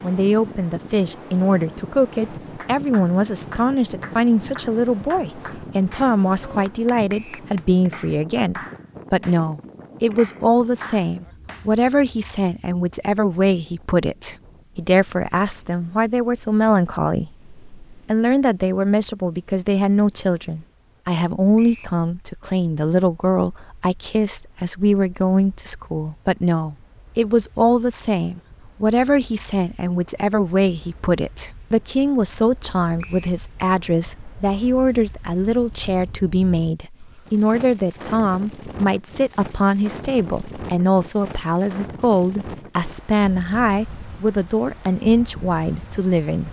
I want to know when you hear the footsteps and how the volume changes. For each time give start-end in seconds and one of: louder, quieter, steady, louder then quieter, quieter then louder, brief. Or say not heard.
not heard.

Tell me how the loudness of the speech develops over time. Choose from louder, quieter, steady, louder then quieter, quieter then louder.
steady.